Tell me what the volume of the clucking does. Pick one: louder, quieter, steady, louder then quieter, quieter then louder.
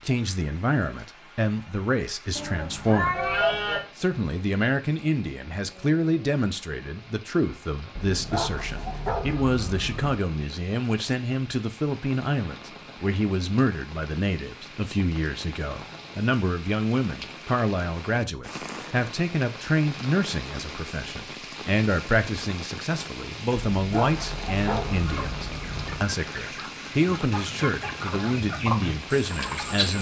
louder.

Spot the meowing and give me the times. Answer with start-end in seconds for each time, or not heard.
2.4-3.9.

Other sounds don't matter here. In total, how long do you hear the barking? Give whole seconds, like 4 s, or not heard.
5 s.